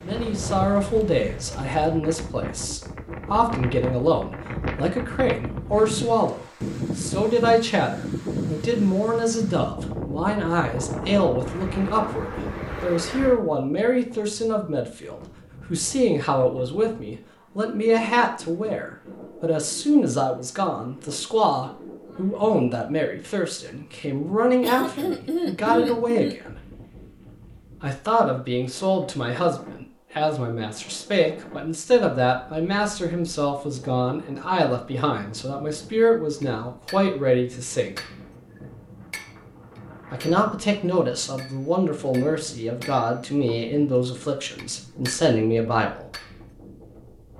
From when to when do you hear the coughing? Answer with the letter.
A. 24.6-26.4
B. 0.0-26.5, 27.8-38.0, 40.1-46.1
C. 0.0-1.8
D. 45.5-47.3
A.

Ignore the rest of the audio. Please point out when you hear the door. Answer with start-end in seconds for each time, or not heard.
not heard.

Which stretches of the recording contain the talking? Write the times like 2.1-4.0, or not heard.
0.0-26.5, 27.8-38.0, 40.1-46.1.